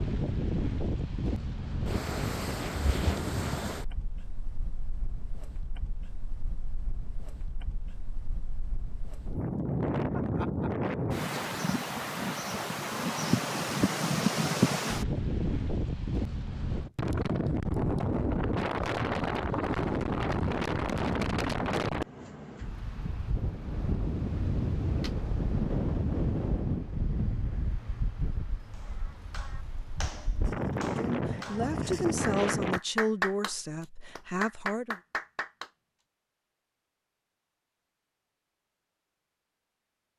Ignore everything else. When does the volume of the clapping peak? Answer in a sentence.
The volume of the clapping peaks at 33 seconds.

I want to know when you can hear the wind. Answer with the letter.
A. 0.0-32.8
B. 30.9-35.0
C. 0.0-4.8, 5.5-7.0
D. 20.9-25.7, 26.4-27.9
A.